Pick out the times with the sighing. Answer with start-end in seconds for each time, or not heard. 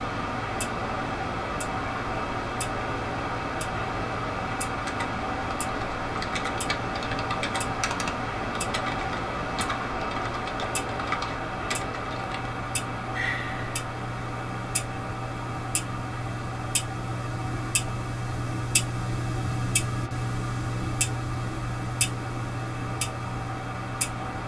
13.1-13.8.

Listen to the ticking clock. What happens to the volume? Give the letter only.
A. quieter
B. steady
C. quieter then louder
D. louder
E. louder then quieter
D.